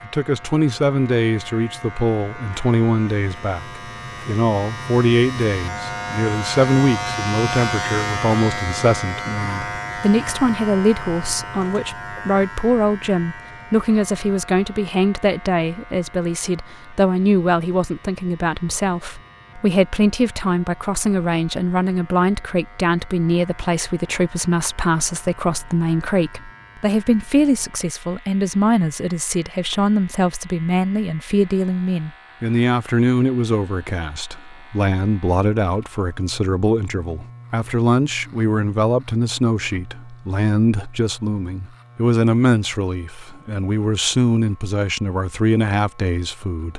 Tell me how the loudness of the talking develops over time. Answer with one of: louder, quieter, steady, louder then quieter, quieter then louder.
steady.